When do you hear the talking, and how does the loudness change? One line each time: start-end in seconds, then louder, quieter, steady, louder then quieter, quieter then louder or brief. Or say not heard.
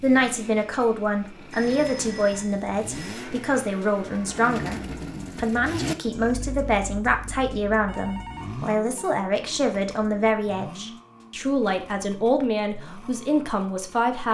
0.0-4.8 steady
5.4-14.2 steady.